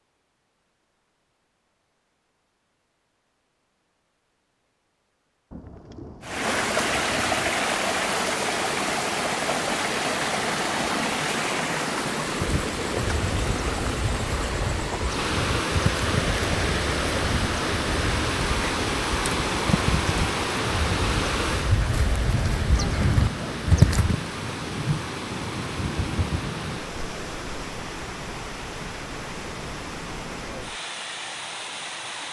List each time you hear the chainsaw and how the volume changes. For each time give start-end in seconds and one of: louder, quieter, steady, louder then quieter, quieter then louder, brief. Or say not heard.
not heard.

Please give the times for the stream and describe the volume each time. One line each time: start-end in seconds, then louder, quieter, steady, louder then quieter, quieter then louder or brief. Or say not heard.
6.2-32.2 quieter.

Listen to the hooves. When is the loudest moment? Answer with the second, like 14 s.
24 s.